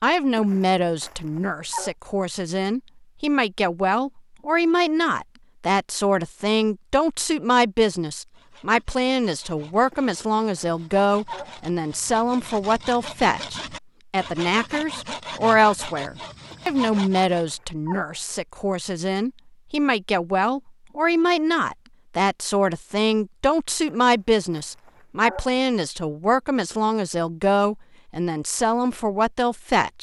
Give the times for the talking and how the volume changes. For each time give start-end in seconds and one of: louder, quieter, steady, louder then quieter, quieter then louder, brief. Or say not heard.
0.0-29.9 steady.